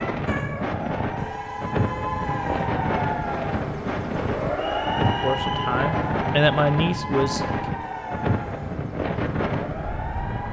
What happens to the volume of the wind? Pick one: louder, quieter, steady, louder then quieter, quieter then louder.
steady.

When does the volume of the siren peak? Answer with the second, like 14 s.
5 s.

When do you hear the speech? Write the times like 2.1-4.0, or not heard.
5.0-7.8.